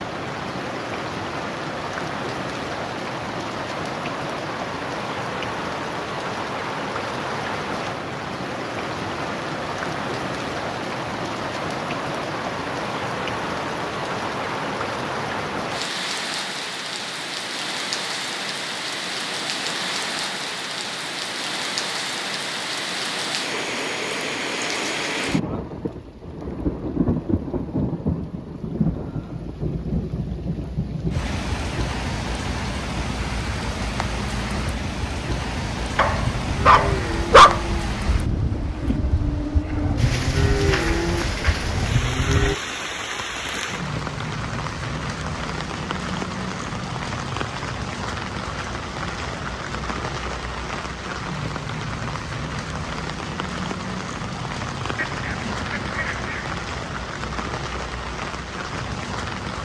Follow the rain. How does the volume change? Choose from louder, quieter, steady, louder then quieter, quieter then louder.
steady.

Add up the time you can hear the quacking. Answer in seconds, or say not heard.
2 s.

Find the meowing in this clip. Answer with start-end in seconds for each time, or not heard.
not heard.